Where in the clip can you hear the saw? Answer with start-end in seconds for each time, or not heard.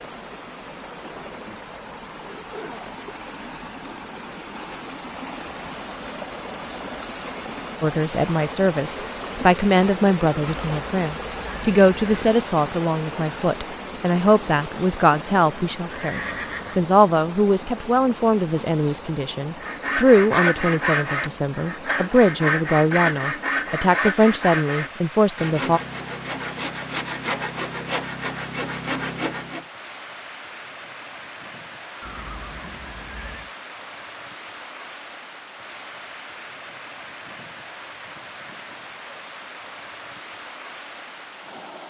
19.6-29.6.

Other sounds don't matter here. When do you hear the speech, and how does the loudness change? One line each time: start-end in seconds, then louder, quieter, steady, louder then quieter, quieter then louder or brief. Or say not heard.
7.8-25.8 steady.